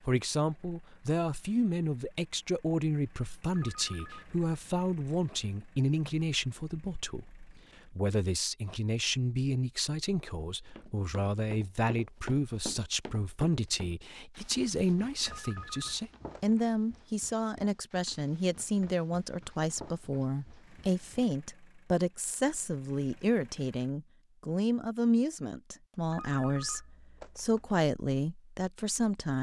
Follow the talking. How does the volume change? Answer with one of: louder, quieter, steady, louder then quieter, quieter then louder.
steady.